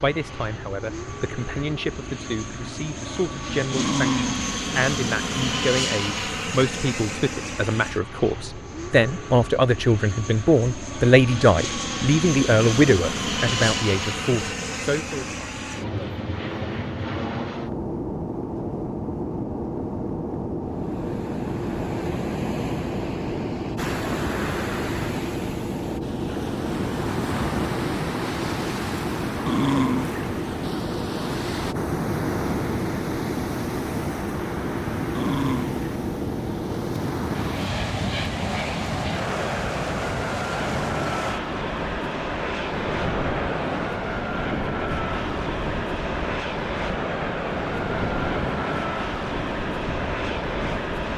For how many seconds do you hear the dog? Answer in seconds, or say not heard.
2 s.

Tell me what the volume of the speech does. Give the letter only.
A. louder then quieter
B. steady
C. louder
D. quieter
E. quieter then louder
C.